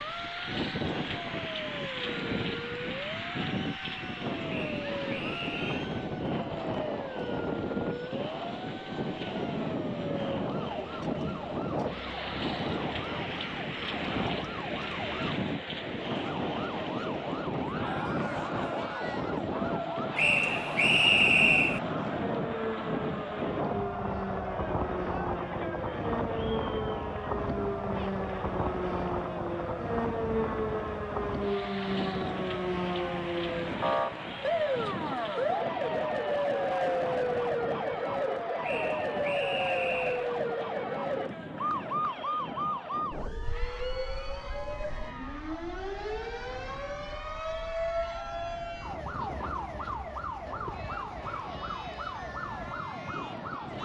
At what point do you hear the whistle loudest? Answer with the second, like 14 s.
21 s.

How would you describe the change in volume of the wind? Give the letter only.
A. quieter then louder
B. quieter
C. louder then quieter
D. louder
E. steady
B.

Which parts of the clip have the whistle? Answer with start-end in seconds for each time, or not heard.
4.5-5.7, 20.1-21.8, 38.6-40.3.